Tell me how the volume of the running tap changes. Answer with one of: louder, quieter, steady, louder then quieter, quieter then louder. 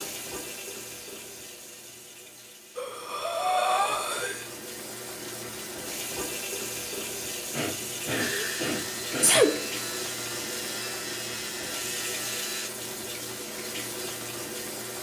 louder.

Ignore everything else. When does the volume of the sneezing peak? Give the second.
9 s.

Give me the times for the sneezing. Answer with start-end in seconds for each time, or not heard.
8.1-9.7.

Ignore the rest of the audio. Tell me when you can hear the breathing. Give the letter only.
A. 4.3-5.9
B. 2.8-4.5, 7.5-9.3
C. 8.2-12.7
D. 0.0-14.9
B.